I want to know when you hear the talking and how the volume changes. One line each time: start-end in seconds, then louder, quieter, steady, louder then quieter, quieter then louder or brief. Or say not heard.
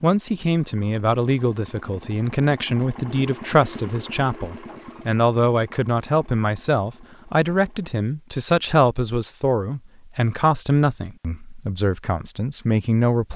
0.0-13.3 steady.